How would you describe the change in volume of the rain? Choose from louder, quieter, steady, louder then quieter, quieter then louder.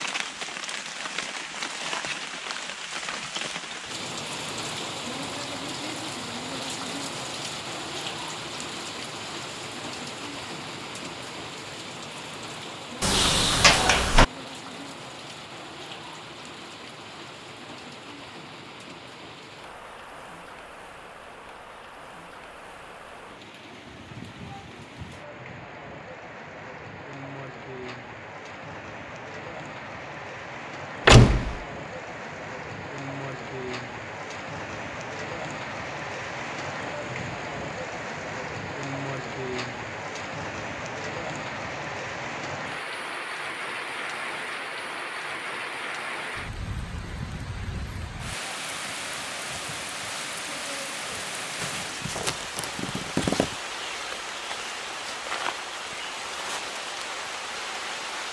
quieter then louder.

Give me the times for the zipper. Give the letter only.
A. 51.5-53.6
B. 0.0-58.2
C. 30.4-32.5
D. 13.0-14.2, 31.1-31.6
A.